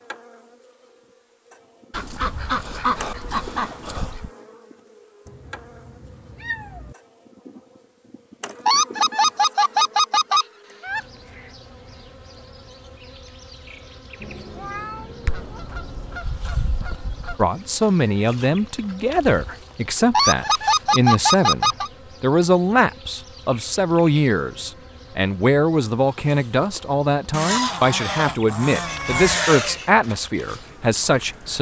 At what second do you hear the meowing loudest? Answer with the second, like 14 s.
29 s.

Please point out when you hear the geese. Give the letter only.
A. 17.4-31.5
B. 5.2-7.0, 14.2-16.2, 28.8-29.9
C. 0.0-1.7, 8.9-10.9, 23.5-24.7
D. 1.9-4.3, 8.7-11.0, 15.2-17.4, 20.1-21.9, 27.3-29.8
D.